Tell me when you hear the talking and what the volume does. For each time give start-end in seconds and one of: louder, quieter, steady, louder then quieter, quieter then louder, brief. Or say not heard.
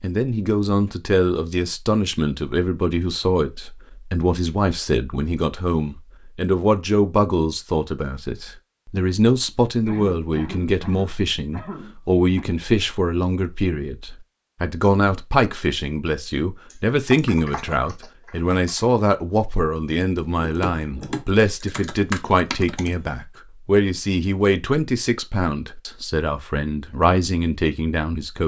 0.0-28.4 steady.